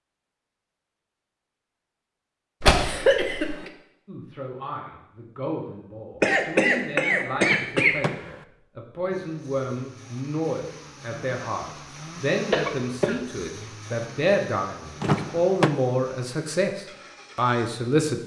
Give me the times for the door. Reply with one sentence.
You can hear the door from 2.6 to 3.5 s, from 7.4 to 8.4 s and from 15.0 to 15.8 s.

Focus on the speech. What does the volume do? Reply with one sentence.
The loudness of the speech goes up.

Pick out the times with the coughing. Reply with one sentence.
You can hear the coughing from 2.6 to 3.7 s, from 6.2 to 8.0 s and from 12.5 to 13.2 s.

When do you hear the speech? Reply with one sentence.
You can hear the speech from 4.0 to 18.2 s.